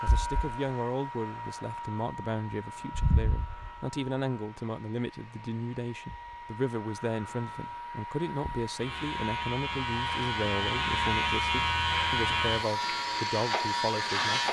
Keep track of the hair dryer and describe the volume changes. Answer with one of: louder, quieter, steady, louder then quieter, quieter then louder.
quieter then louder.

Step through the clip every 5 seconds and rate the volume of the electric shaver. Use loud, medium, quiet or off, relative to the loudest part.
medium, medium, loud.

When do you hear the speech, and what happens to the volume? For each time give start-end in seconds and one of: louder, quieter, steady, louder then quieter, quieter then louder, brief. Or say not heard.
0.0-14.4 steady.